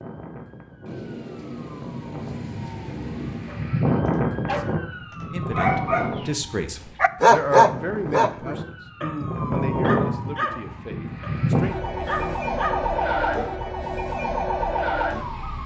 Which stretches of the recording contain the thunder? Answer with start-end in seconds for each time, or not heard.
0.8-3.8.